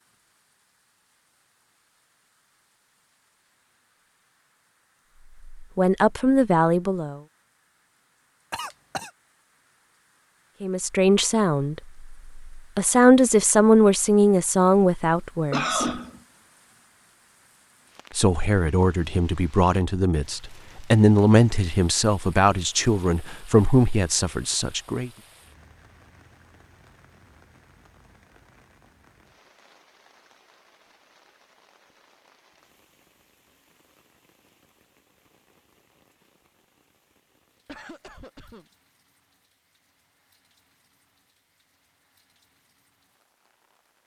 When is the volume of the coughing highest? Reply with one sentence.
The volume of the coughing peaks at 16 seconds.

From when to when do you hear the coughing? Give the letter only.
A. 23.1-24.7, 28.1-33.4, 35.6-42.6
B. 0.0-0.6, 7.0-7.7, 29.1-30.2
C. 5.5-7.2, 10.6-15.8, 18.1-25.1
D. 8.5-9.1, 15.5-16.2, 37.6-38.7
D.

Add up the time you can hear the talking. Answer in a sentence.
The talking can be heard for 14 seconds in total.